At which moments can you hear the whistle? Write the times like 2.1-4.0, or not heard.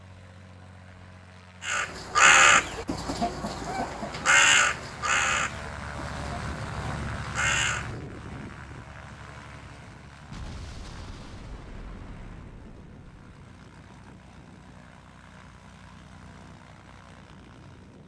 not heard.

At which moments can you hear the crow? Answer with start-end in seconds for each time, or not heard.
1.6-7.9.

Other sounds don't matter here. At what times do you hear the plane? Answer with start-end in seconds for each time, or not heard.
0.0-18.0.